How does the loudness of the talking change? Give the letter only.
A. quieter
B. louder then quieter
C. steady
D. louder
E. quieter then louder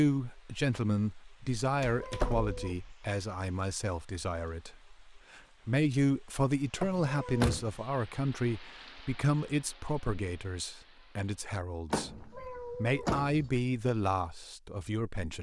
C.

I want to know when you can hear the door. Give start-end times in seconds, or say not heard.
1.6-3.0, 6.8-7.7, 11.9-13.5.